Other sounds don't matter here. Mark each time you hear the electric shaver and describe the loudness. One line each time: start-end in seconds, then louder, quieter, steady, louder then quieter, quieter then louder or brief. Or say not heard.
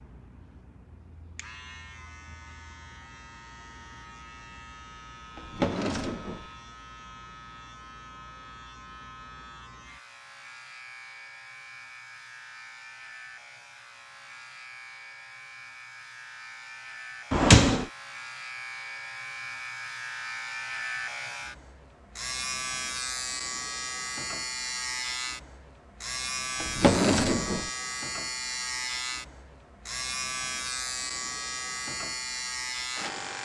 0.0-33.3 louder.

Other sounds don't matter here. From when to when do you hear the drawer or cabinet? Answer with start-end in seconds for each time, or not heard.
5.3-6.5, 17.3-17.9, 26.6-27.7.